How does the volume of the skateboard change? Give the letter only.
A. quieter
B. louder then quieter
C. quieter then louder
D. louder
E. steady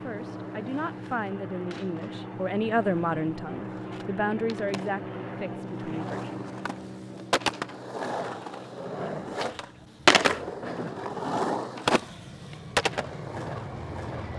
D.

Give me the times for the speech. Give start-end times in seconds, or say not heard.
0.0-6.3.